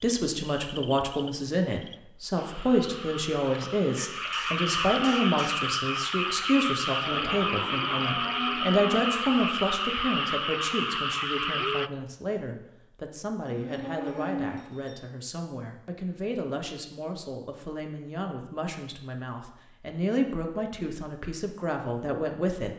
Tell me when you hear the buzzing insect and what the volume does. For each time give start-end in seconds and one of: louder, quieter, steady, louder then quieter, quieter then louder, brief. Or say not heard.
not heard.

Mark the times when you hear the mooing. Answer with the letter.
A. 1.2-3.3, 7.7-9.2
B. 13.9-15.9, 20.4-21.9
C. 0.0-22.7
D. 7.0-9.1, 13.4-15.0
D.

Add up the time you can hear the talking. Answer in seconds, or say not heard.
23 s.